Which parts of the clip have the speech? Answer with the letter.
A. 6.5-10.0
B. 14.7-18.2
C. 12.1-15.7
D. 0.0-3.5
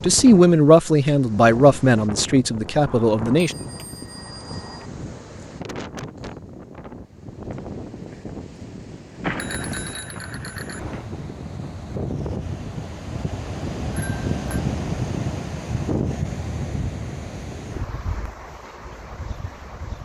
D.